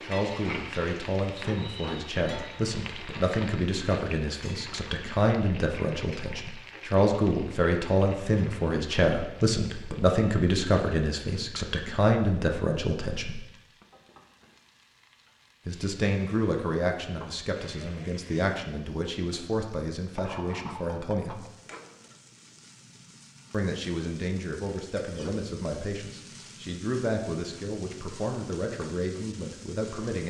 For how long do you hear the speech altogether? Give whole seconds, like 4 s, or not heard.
26 s.